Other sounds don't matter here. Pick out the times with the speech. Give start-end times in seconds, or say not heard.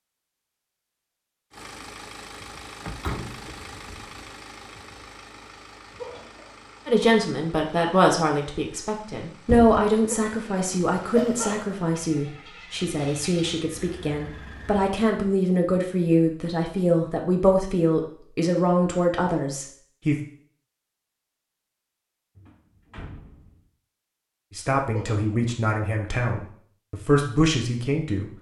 6.8-20.1, 24.6-28.3.